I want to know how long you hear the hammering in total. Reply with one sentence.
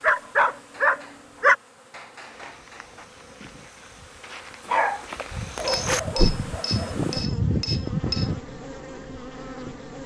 The hammering can be heard for 5 seconds in total.